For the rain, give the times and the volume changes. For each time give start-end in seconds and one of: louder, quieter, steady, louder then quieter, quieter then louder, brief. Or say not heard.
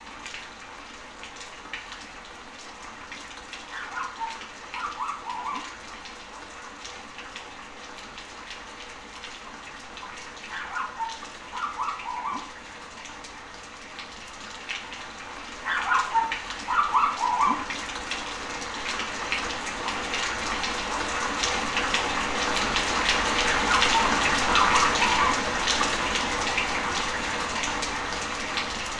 0.0-28.9 louder.